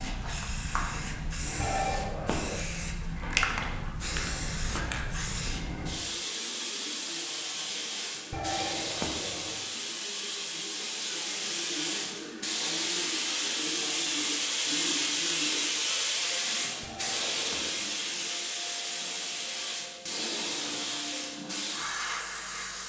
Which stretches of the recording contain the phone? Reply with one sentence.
The phone can be heard from 1.6 to 2.6 s, from 8.3 to 9.7 s and from 16.8 to 17.9 s.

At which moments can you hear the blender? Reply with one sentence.
You can't hear the blender here.